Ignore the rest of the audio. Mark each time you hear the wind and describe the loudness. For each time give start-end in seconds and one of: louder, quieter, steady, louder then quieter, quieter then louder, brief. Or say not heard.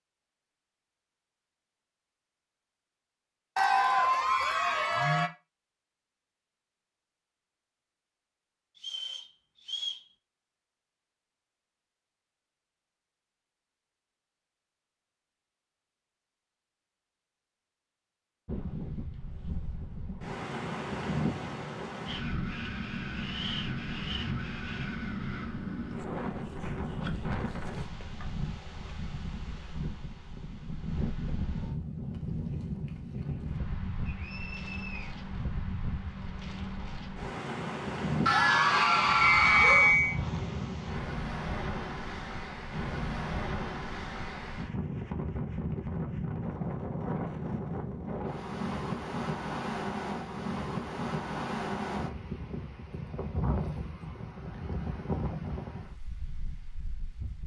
18.4-57.4 steady.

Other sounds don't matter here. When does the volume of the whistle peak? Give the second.
40 s.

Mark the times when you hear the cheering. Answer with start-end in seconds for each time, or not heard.
3.5-5.3, 38.2-40.0.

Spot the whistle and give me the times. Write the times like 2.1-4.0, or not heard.
8.8-10.1, 34.0-35.1, 39.2-40.2.